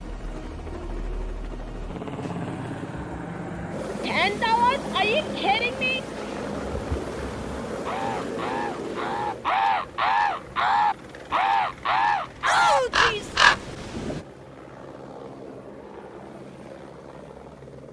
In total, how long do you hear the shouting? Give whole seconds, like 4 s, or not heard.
3 s.